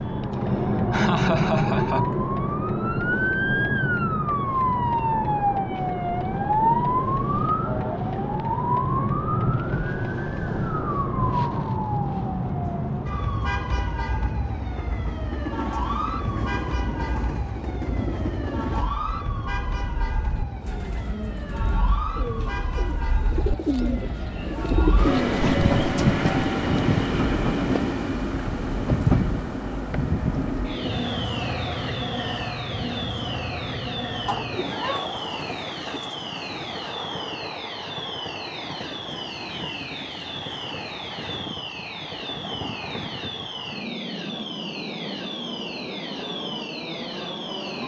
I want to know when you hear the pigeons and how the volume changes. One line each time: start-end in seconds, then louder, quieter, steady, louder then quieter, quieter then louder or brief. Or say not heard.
20.6-26.4 louder.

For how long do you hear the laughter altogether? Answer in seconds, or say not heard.
3 s.